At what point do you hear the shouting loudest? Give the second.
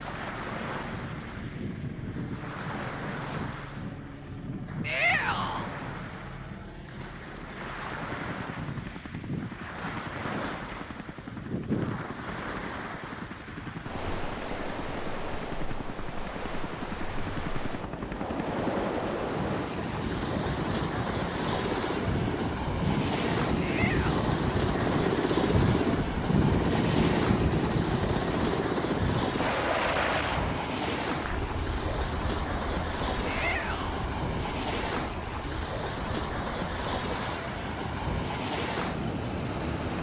5 s.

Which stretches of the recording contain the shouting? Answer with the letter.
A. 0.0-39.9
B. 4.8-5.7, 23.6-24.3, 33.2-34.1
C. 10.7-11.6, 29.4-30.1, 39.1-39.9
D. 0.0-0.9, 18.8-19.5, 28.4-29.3
B.